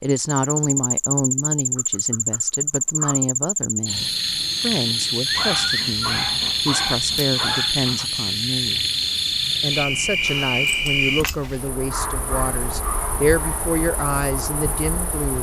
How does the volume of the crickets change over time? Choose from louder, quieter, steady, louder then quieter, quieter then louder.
quieter.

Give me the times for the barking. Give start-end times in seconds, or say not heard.
1.8-3.2, 5.2-8.1, 11.9-13.7.